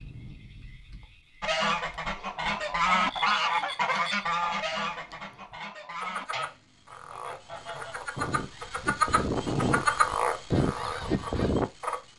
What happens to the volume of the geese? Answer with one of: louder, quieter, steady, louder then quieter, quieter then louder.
quieter then louder.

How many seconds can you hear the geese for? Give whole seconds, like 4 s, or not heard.
10 s.